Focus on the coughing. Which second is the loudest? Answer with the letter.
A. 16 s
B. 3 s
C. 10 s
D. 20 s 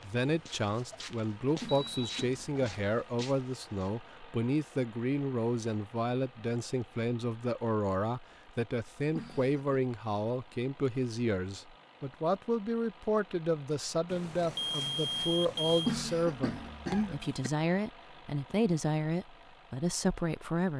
A.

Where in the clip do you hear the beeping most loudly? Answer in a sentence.
The loudest moment of the beeping is at 15 seconds.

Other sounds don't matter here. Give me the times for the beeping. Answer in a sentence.
You can hear the beeping from 1.7 to 2.1 s and from 14.1 to 15.9 s.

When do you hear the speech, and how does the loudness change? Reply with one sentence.
The speech can be heard from 0.0 to 20.7 s, at a steady volume.